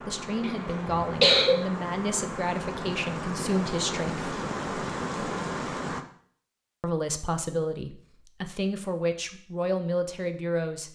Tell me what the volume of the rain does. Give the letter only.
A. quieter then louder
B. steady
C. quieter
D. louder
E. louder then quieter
D.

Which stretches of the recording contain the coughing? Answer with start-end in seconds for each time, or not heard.
0.4-1.6.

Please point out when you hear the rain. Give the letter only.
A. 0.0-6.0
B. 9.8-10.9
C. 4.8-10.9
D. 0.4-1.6
A.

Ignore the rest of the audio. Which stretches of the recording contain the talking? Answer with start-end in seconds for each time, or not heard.
0.0-4.3, 6.8-10.9.